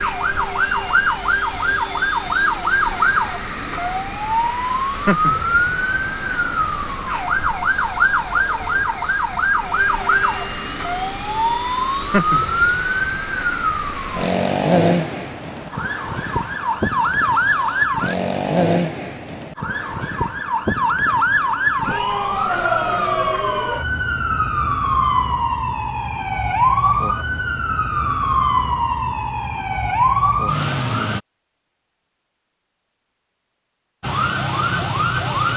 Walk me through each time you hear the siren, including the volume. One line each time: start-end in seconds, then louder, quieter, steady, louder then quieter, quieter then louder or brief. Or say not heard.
0.0-31.2 steady
34.0-35.5 brief.